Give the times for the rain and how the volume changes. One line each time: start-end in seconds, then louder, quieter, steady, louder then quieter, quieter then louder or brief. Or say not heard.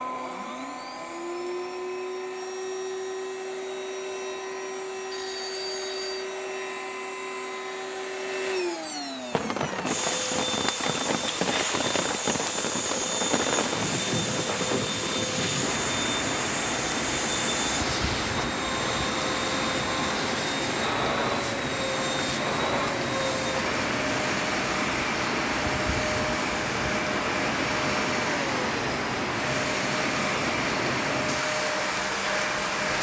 9.3-32.9 steady.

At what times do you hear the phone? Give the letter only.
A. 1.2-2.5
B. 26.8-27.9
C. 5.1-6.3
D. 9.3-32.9
C.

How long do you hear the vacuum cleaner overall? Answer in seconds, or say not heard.
33 s.